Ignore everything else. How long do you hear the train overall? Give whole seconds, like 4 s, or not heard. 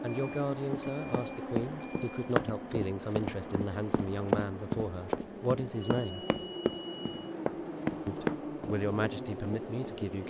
10 s.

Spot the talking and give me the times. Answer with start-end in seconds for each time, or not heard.
0.0-6.2, 8.1-10.2.